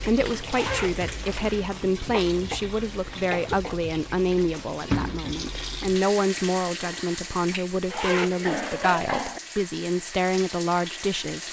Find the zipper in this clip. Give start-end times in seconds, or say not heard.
0.5-1.7, 7.8-8.9.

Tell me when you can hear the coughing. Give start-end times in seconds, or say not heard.
2.1-3.8, 8.0-9.4.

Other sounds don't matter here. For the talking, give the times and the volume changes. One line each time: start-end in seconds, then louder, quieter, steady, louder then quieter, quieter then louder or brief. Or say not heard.
0.0-11.4 steady.